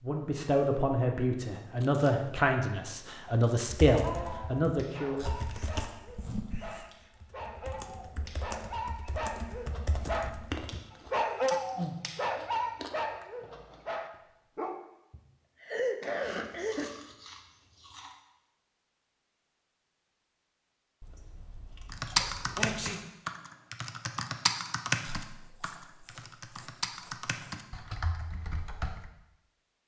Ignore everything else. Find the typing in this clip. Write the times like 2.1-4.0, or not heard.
3.7-10.8, 21.9-29.1.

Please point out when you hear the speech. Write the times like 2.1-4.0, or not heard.
0.0-5.3.